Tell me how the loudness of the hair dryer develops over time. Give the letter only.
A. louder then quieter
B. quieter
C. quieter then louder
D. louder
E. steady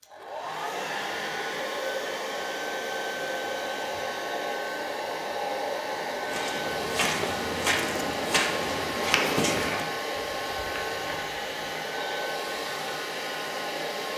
E.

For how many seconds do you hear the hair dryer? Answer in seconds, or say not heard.
14 s.